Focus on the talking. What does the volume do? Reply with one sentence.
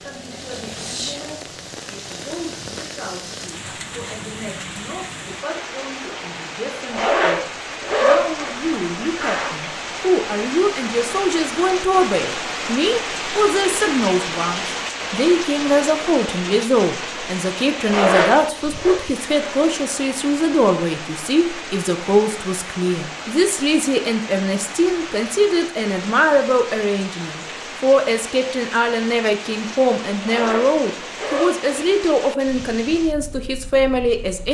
The loudness of the talking goes up.